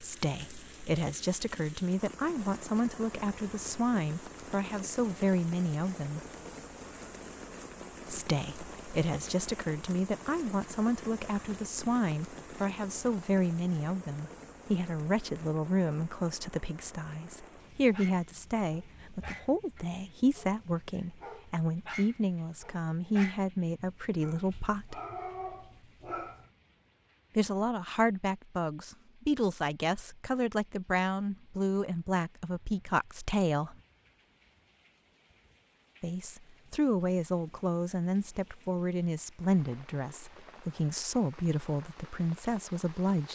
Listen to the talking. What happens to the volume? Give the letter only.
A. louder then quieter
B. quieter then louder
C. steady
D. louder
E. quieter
C.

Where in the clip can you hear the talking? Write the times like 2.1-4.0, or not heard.
0.0-6.2, 8.1-25.0, 27.4-33.8, 36.0-43.3.